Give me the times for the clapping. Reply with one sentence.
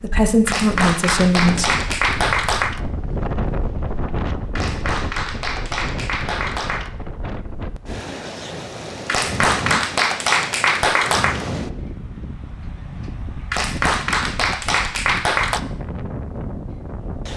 The clapping can be heard from 0.5 to 2.8 s, from 4.5 to 6.9 s, from 9.1 to 11.4 s and from 13.5 to 15.6 s.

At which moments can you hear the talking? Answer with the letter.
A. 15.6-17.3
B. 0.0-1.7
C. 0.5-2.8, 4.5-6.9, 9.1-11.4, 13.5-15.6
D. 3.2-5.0
B.